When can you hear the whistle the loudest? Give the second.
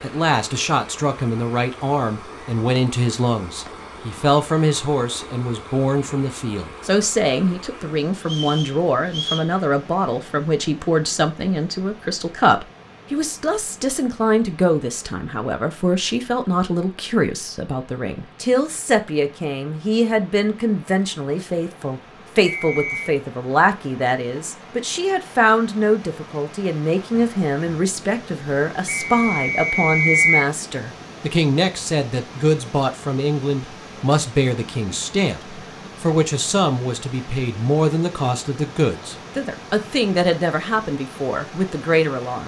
30 s.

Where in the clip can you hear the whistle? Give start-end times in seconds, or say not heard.
8.2-9.5, 22.4-23.1, 28.9-30.4.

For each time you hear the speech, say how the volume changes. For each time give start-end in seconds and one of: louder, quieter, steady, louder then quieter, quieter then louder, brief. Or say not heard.
0.0-42.4 steady.